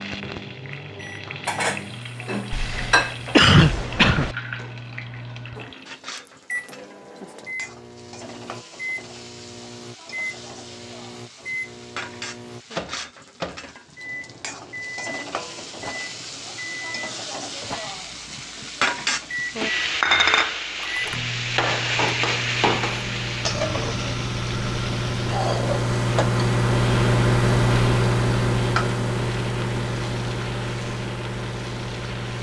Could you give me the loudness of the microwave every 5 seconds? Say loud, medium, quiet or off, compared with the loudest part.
quiet, quiet, quiet, quiet, medium, loud, medium.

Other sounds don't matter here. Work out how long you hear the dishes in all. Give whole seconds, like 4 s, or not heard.
2 s.